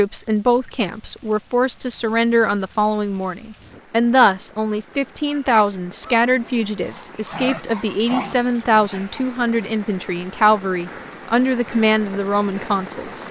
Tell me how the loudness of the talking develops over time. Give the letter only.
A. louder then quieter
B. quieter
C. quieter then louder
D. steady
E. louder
D.